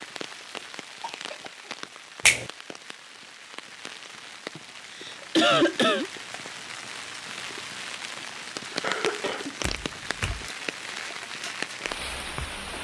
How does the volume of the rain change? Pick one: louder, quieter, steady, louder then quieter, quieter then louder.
louder.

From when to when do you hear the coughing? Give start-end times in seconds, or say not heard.
1.0-1.6, 4.5-6.1, 8.8-9.6.